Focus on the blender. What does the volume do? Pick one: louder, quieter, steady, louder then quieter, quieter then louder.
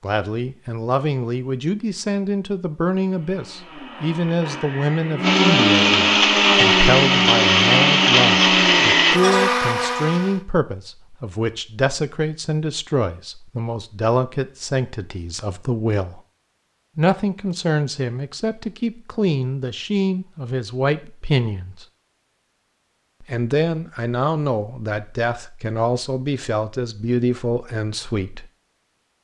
louder.